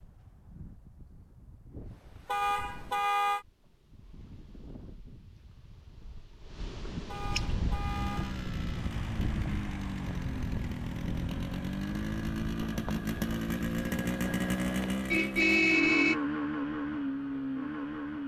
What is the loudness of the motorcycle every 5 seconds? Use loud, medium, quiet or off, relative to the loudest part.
off, medium, loud, loud.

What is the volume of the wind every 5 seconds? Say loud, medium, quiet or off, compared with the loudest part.
quiet, loud, loud, off.